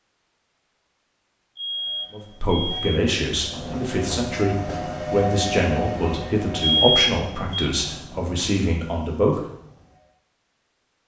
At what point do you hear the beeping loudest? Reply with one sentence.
The loudest moment of the beeping is at 7 seconds.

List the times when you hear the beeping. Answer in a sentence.
You can hear the beeping from 1.6 to 2.9 s and from 6.6 to 7.7 s.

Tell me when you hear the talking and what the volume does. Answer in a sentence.
You can hear the talking from 2.1 to 9.4 s, at a steady volume.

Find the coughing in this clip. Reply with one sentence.
The coughing can't be heard in this clip.